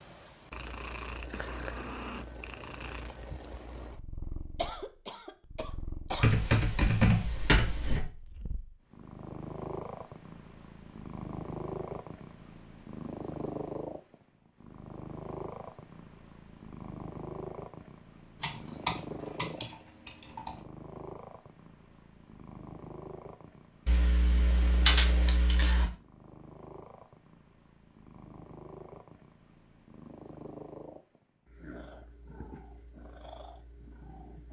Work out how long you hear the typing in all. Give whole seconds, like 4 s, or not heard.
6 s.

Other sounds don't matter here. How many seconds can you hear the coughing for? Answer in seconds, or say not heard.
2 s.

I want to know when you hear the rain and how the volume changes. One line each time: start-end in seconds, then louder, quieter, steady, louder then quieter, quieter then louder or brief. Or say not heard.
not heard.